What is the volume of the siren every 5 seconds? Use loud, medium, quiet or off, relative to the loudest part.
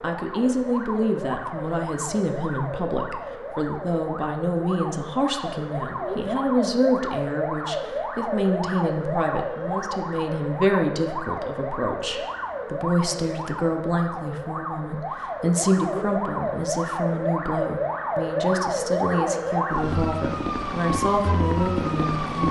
medium, loud, medium, loud, loud.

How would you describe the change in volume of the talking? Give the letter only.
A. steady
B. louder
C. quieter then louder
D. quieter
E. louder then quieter
A.